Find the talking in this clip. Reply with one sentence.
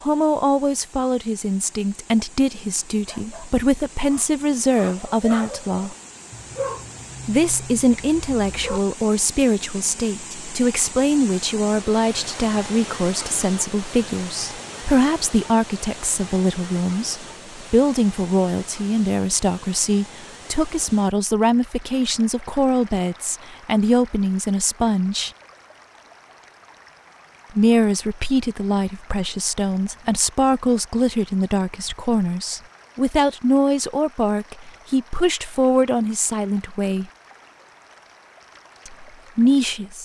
You can hear the talking from 0.0 to 6.0 s, from 7.2 to 25.3 s, from 27.5 to 37.0 s and from 38.9 to 39.9 s.